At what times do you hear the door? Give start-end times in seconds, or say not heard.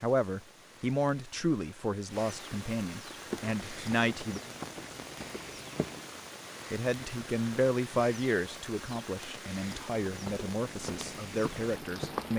not heard.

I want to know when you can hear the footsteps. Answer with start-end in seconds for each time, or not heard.
3.2-6.1, 9.6-12.3.